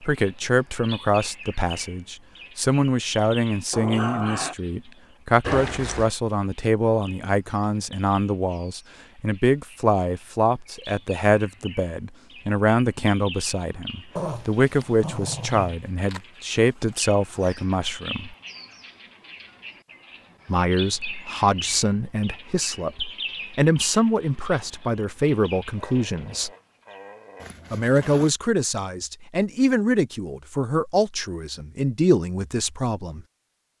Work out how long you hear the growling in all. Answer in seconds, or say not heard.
4 s.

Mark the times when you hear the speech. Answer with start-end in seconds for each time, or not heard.
0.0-18.4, 20.4-26.5, 27.7-33.2.